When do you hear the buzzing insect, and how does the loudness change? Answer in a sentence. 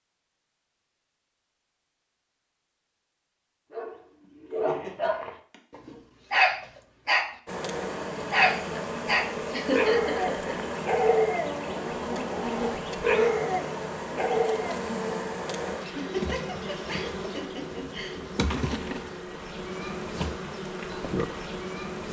You can hear the buzzing insect from 7.5 to 22.0 s, at a steady volume.